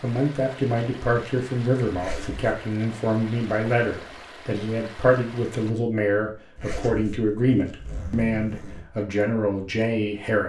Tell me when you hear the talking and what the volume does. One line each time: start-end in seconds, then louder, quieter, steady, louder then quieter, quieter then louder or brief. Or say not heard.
0.0-10.4 steady.